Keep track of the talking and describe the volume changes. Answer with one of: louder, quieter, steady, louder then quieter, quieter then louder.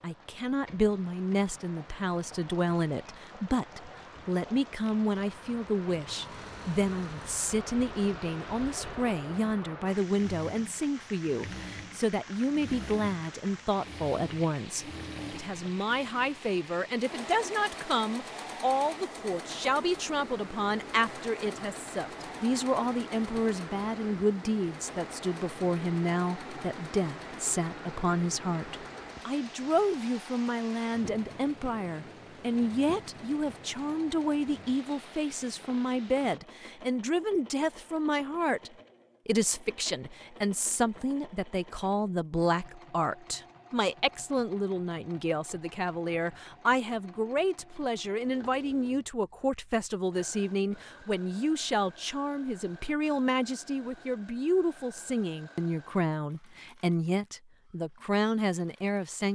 steady.